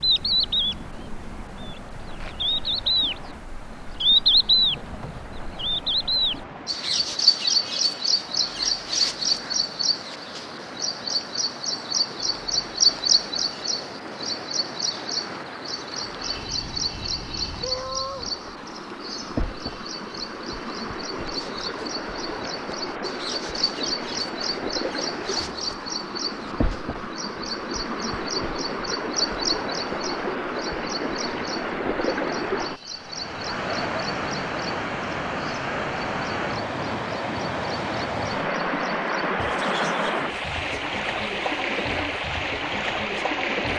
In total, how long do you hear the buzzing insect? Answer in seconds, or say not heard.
not heard.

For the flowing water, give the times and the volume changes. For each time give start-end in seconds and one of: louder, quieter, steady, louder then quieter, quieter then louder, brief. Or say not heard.
0.0-43.7 louder.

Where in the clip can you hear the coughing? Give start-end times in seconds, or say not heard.
not heard.